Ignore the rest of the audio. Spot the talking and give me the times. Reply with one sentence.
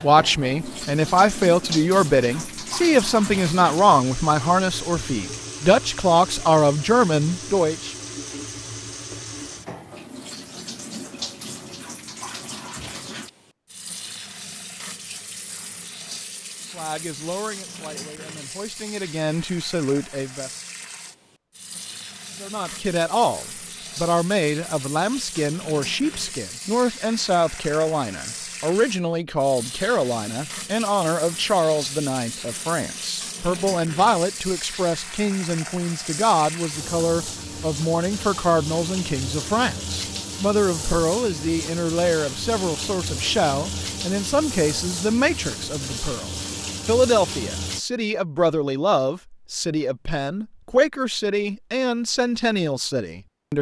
You can hear the talking from 0.0 to 8.0 s, from 16.8 to 20.5 s and from 22.4 to 53.5 s.